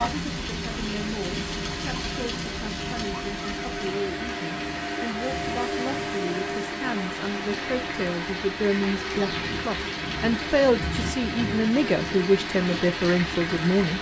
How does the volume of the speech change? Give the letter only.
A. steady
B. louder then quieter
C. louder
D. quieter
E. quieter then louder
C.